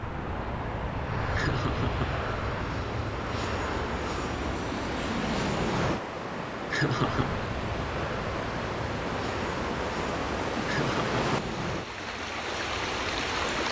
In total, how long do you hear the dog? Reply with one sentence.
The dog can't be heard in this clip.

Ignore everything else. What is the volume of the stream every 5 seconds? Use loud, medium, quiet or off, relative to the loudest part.
medium, loud, loud.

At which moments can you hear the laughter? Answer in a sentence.
The laughter can be heard from 1.4 to 2.1 s, from 6.7 to 7.3 s and from 10.7 to 11.2 s.